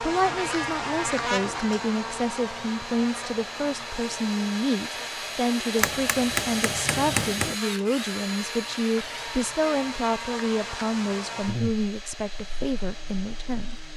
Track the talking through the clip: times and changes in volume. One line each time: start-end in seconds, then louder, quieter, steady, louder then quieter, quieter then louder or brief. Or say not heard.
0.0-13.8 steady.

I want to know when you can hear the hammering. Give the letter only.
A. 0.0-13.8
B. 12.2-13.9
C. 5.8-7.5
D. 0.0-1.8
C.